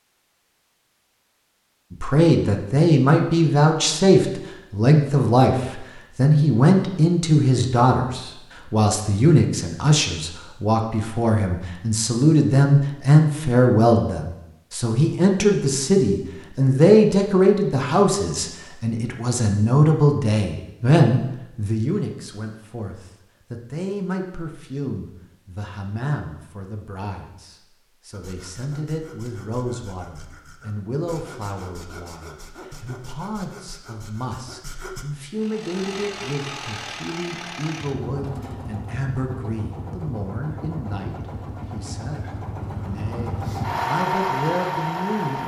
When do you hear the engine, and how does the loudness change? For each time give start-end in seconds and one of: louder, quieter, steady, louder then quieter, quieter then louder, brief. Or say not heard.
35.4-45.4 louder.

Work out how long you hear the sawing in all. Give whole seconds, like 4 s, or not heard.
7 s.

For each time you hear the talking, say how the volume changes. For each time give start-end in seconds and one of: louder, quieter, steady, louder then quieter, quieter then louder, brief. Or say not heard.
1.9-45.4 quieter.